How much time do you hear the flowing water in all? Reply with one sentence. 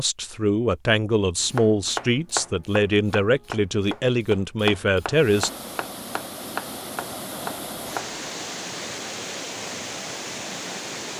The flowing water can be heard for 6 seconds in total.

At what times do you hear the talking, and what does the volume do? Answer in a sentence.
You can hear the talking from 0.0 to 5.5 s, at a steady volume.